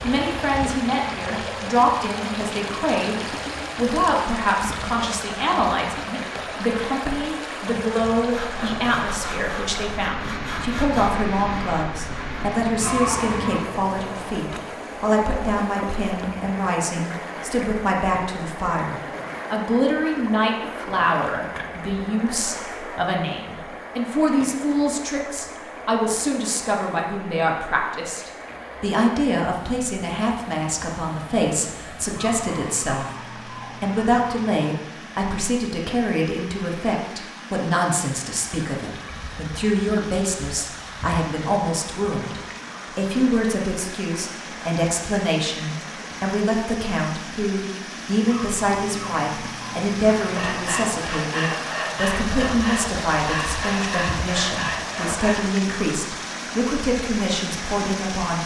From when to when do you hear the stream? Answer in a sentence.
The stream can be heard from 0.0 to 58.4 s.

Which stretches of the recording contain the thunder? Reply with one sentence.
You can't hear the thunder here.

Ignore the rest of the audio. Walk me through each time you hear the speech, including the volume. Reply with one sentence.
You can hear the speech from 0.0 to 58.4 s, at a steady volume.